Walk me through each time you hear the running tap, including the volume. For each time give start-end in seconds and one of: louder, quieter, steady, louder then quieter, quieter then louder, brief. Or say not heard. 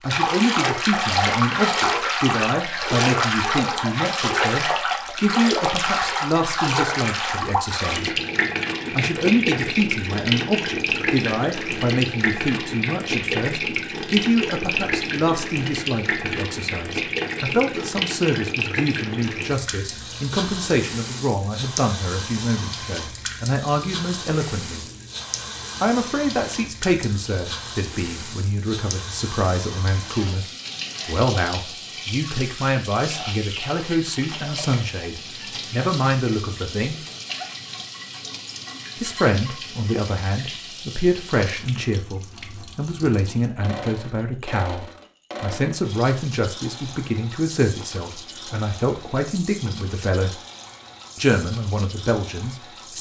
0.0-52.9 quieter.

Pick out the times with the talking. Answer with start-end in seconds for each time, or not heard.
0.0-8.2, 8.9-24.9, 25.8-37.0, 39.0-50.4, 51.1-52.9.